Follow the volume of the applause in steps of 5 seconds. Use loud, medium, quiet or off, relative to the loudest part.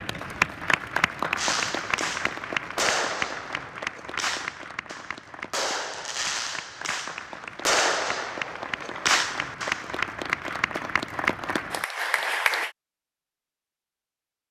loud, medium, loud.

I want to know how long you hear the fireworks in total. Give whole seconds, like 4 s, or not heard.
9 s.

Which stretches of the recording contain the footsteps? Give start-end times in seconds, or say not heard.
not heard.